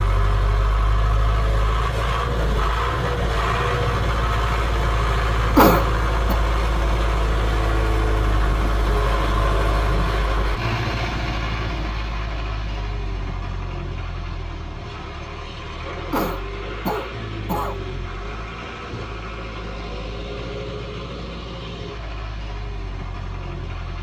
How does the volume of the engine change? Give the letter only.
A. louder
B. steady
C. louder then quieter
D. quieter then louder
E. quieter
E.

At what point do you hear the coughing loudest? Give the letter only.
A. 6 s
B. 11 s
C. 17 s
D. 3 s
A.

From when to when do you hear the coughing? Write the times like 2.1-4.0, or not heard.
5.5-6.3, 16.1-17.8.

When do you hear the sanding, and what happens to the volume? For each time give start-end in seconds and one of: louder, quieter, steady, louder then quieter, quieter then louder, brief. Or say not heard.
not heard.